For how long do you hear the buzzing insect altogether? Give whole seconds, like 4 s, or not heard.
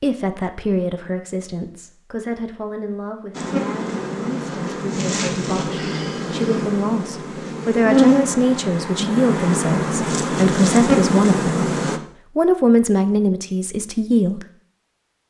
9 s.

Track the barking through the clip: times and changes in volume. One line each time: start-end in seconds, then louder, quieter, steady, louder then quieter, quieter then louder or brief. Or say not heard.
not heard.